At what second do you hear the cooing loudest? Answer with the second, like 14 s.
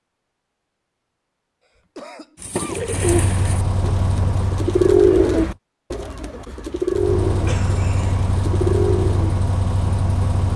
5 s.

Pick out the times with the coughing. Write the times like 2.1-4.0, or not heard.
1.6-2.8, 7.5-8.2.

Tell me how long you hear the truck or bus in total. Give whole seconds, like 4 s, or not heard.
6 s.